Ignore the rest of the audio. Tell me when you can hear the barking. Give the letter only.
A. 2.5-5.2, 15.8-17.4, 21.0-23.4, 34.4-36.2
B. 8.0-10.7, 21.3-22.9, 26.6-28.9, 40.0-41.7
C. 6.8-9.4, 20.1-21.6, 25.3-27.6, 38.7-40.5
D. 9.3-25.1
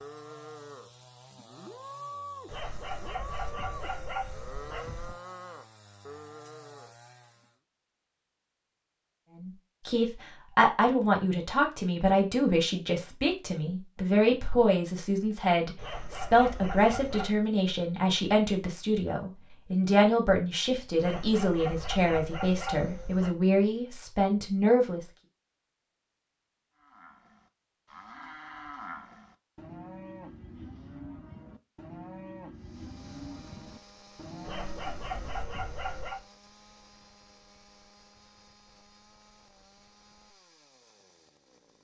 A.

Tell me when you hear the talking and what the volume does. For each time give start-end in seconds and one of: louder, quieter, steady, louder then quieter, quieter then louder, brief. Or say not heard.
9.3-25.1 steady.